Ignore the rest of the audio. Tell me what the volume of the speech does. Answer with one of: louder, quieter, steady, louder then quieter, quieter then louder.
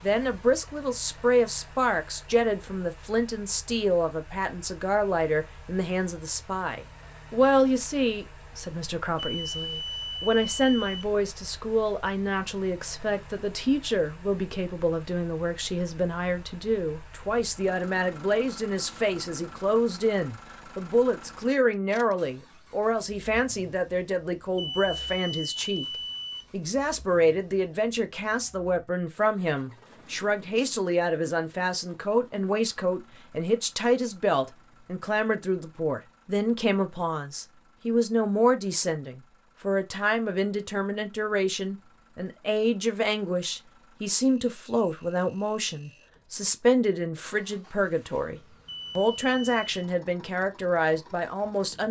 steady.